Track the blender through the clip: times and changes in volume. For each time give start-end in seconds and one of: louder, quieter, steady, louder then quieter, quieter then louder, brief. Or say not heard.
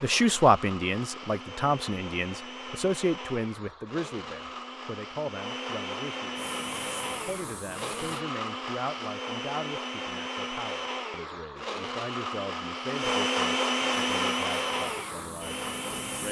0.0-16.2 louder.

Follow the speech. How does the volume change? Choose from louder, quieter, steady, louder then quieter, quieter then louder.
quieter.